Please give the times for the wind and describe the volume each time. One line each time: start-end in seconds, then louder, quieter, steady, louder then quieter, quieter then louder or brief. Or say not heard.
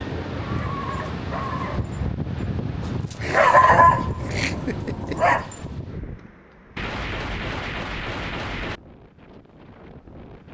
0.0-10.5 quieter.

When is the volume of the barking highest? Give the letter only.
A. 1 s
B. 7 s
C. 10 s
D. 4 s
D.